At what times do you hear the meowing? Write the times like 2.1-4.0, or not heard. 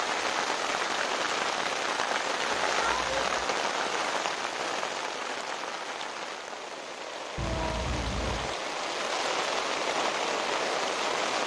2.5-3.5, 7.3-8.6.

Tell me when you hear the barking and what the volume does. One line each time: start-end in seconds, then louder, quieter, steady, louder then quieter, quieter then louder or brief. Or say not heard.
not heard.